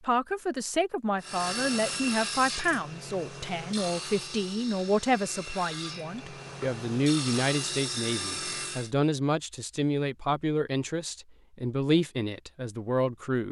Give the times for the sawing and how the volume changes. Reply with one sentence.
The sawing can be heard from 1.2 to 8.9 s, getting quieter then louder.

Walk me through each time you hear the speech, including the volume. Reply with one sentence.
The speech can be heard from 0.0 to 13.4 s, at a steady volume.